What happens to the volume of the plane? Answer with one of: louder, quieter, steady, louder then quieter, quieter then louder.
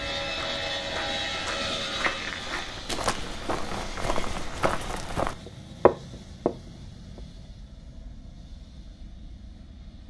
quieter.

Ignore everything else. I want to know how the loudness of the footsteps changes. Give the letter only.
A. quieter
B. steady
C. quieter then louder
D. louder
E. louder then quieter
D.